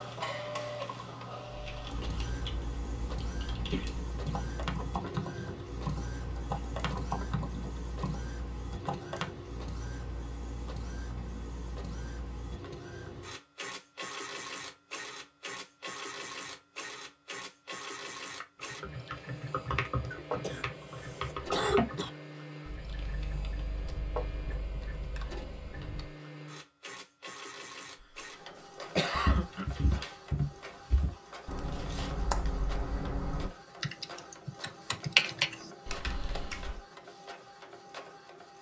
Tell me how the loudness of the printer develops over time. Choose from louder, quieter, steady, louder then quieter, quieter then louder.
quieter.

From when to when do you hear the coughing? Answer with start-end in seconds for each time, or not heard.
3.7-4.3, 20.1-22.1, 28.0-29.8.